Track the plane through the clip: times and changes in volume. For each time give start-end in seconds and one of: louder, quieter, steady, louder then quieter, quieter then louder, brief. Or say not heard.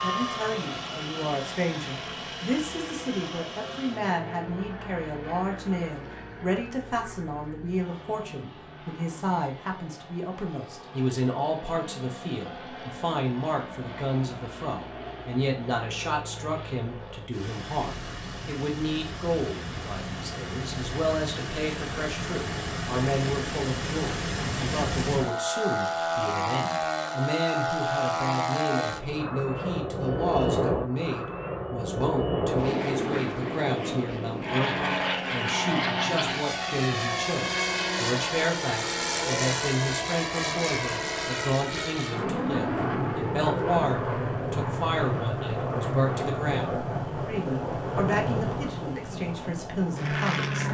0.0-50.6 louder.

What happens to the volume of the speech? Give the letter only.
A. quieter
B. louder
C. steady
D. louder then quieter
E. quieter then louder
C.